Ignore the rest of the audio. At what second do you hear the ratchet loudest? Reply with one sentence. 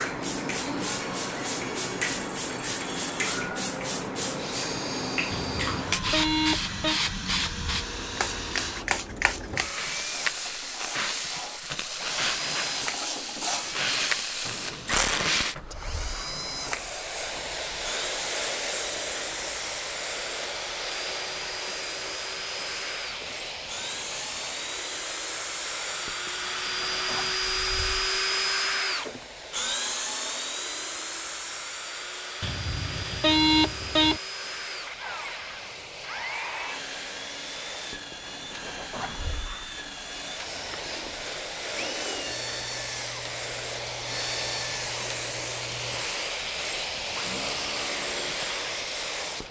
The volume of the ratchet peaks at 15 seconds.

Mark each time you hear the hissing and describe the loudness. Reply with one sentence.
The hissing can be heard from 0.0 to 49.4 s, getting quieter then louder.